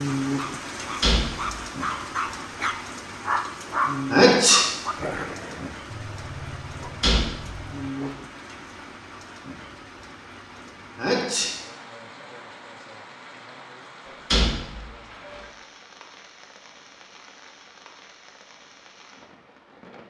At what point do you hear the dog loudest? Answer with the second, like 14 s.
4 s.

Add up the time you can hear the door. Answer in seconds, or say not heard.
3 s.